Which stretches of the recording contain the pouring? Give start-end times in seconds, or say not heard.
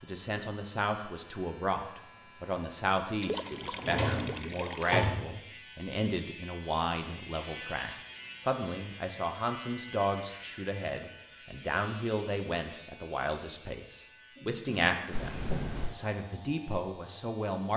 3.2-5.0, 15.1-16.0.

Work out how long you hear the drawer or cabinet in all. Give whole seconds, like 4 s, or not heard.
3 s.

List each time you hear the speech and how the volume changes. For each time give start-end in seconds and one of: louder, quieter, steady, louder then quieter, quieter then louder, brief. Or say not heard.
0.0-17.7 steady.